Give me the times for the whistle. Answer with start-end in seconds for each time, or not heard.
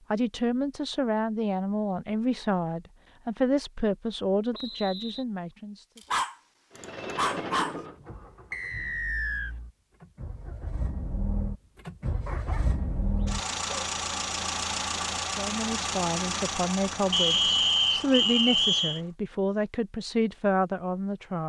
4.5-5.2, 8.5-9.6, 17.1-19.0.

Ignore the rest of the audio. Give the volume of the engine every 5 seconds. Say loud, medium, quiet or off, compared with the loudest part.
off, medium, loud, loud, off.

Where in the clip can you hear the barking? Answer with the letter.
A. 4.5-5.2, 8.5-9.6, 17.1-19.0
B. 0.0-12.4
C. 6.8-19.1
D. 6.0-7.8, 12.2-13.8
D.